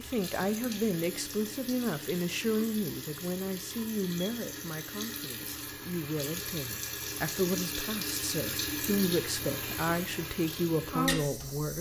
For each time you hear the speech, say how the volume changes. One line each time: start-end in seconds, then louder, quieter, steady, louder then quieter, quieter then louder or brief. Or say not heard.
0.0-11.7 quieter then louder.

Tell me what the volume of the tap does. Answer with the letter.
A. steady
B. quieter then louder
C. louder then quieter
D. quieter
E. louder
E.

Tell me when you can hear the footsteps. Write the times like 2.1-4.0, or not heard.
not heard.